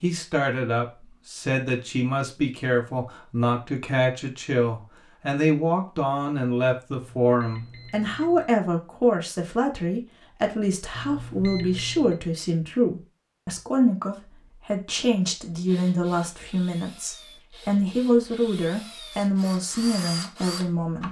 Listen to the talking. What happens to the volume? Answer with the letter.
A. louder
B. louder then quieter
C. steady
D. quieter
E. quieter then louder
C.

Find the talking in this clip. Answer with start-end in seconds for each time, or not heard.
0.0-21.0.